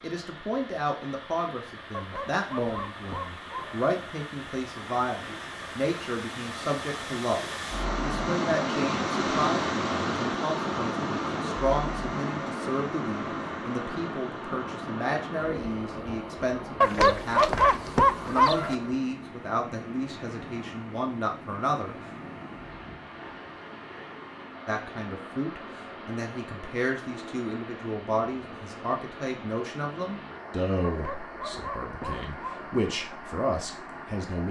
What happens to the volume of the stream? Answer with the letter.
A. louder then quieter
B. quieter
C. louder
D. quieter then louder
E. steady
A.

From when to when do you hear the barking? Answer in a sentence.
You can hear the barking from 1.9 to 3.8 s, from 16.8 to 18.8 s and from 30.9 to 32.8 s.